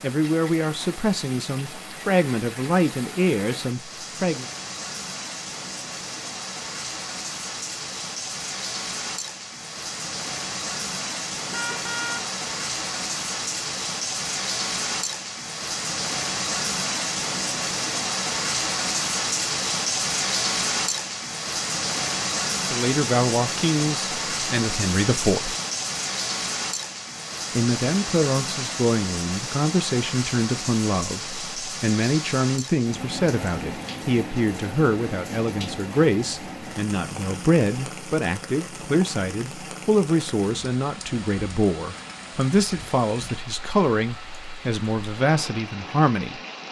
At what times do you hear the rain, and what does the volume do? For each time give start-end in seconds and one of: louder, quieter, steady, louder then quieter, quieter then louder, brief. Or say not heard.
0.0-46.6 louder then quieter.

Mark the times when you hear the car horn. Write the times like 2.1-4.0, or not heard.
11.5-12.3.